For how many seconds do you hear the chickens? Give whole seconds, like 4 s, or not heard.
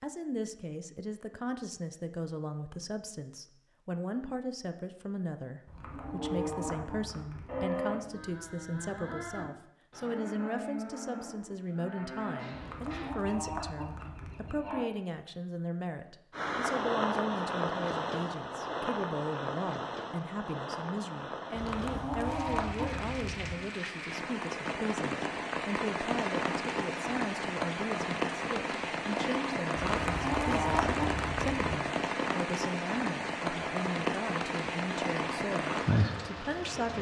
8 s.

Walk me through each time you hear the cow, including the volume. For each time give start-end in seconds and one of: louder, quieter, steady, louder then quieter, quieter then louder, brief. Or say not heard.
5.8-14.8 quieter.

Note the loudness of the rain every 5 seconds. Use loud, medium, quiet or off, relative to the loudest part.
off, off, off, loud, medium, loud, loud, loud.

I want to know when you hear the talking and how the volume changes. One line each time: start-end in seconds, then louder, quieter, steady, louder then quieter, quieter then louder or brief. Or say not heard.
0.0-36.9 steady.